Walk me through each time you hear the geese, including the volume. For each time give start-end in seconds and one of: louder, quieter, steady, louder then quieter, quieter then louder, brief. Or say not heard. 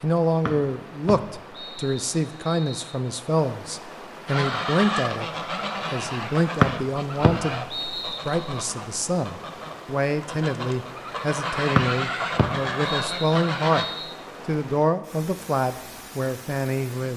4.2-13.8 quieter then louder.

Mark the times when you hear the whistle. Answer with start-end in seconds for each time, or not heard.
0.5-3.0, 6.6-8.7, 11.8-14.2.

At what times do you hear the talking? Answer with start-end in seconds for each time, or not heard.
0.0-5.2, 5.9-7.7, 8.2-13.8, 14.4-17.1.